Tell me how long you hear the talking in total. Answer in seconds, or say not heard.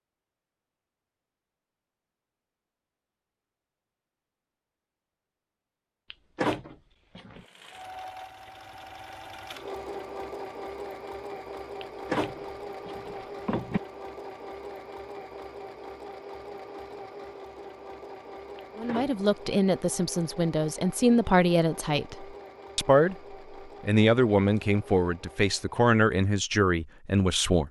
9 s.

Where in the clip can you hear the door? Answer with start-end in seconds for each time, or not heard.
6.1-7.5, 11.8-13.8, 18.6-19.2.